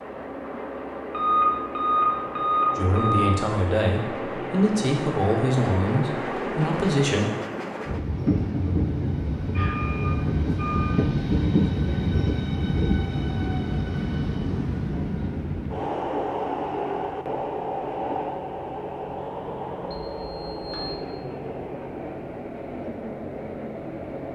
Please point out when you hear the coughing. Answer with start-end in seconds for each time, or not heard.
not heard.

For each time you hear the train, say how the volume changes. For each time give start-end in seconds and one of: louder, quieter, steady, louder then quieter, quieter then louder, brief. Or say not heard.
0.0-24.3 louder then quieter.